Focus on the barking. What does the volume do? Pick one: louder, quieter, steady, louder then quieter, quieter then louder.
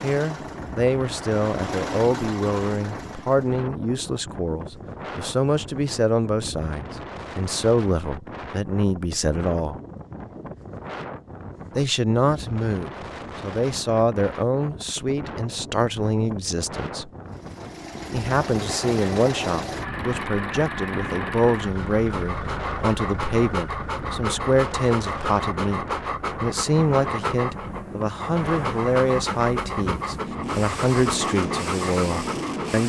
steady.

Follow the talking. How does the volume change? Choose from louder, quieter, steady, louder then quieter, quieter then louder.
steady.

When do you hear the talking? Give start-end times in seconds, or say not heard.
0.0-9.8, 11.8-17.1, 18.1-32.8.